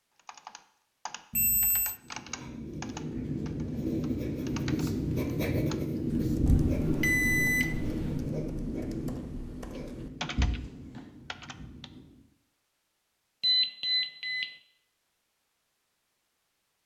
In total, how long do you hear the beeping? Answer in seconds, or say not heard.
4 s.